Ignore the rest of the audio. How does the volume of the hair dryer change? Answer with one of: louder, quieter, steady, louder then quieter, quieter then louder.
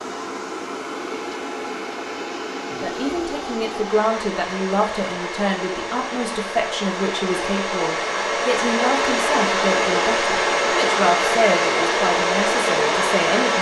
louder.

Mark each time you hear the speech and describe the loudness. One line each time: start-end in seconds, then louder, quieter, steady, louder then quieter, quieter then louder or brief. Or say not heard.
2.8-13.5 steady.